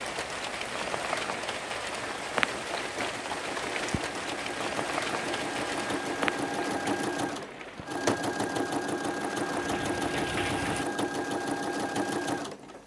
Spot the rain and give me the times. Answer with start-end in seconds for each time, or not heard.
0.0-10.8.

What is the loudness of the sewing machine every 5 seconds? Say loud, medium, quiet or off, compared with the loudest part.
medium, loud, loud.